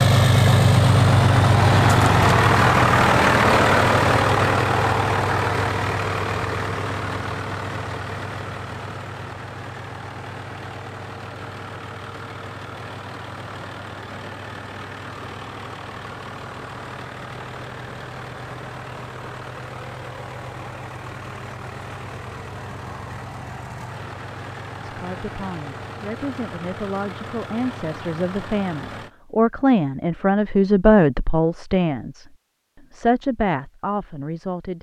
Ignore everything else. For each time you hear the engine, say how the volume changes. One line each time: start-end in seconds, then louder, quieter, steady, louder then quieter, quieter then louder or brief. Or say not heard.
0.0-29.1 quieter.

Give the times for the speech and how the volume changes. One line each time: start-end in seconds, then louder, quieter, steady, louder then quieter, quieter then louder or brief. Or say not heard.
24.8-32.2 louder
32.9-34.7 brief.